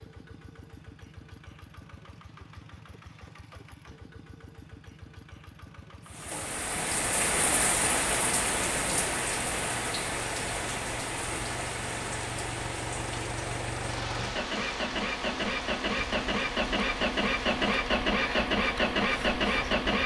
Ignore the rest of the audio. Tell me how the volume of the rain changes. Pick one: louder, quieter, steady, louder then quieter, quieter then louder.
quieter.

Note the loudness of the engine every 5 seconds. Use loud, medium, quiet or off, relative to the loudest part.
quiet, quiet, medium, loud.